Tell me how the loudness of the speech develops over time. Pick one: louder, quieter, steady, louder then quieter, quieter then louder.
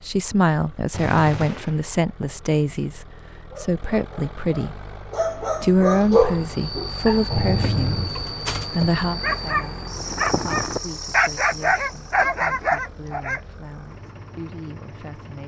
quieter.